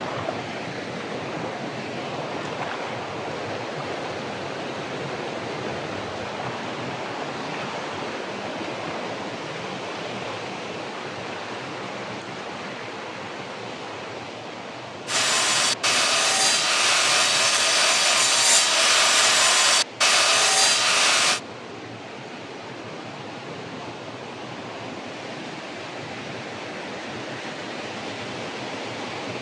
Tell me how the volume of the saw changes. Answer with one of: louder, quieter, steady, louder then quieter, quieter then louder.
steady.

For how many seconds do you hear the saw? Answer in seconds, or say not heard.
6 s.